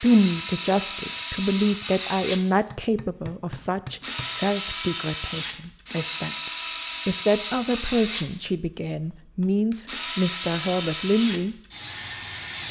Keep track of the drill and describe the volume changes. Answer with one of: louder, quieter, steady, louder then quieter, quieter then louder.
steady.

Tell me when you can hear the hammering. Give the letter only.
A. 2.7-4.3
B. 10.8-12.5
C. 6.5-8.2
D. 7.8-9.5
A.